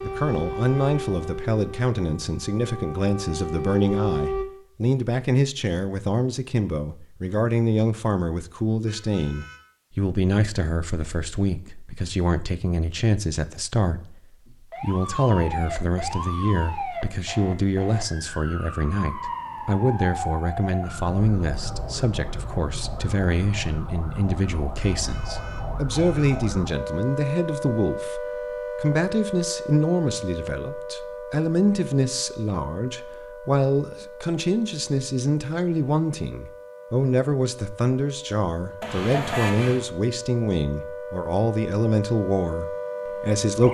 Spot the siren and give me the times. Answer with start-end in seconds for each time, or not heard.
0.0-4.5, 14.4-43.6.